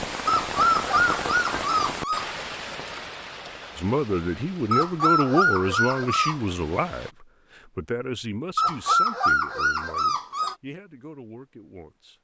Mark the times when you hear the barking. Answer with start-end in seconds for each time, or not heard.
0.2-2.2, 4.7-6.3, 8.6-10.6.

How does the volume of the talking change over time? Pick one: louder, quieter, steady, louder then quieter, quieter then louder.
quieter.